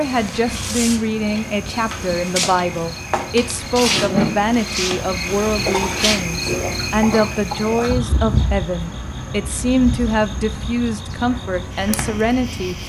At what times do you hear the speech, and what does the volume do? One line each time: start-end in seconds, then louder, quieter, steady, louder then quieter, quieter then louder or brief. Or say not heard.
0.0-12.8 steady.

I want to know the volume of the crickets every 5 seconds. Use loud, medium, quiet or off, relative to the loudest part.
loud, loud, medium.